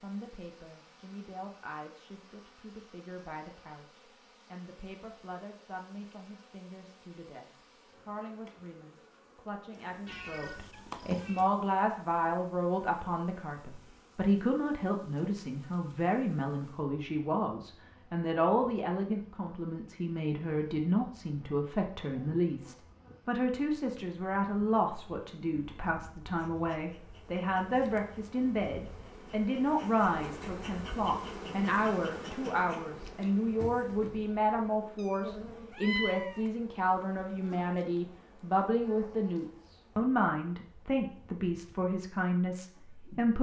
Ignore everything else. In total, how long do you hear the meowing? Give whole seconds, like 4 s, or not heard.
3 s.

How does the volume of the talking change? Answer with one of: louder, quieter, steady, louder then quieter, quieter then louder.
louder.